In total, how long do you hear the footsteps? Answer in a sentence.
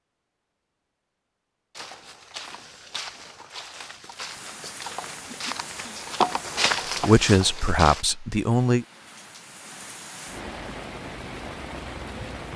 The footsteps can be heard for 6 seconds in total.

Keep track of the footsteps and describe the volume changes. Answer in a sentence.
The loudness of the footsteps goes up.